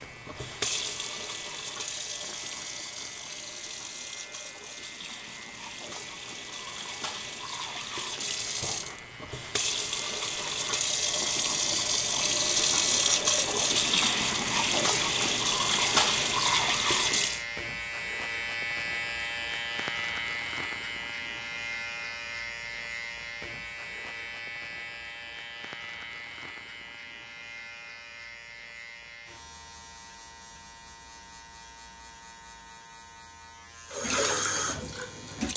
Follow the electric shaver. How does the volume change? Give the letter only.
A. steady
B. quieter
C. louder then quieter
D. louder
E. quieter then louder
C.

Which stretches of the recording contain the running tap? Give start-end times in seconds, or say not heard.
0.0-17.4, 33.9-35.5.